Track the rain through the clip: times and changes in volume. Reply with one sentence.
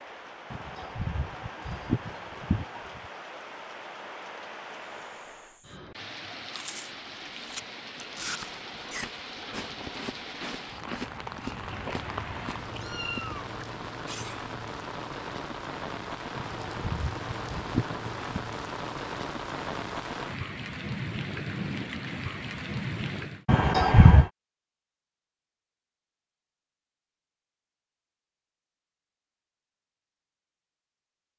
You can hear the rain from 0.0 to 23.4 s, getting louder.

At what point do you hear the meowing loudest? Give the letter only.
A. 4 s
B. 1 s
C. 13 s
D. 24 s
C.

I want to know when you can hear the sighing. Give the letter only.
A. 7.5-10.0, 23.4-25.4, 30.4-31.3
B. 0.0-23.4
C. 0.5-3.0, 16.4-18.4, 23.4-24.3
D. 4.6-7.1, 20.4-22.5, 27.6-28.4
C.